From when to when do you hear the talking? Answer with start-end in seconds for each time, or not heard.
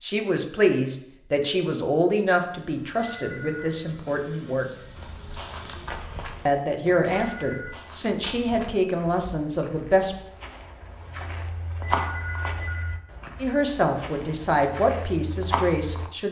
0.0-4.7, 6.5-10.2, 13.4-16.2.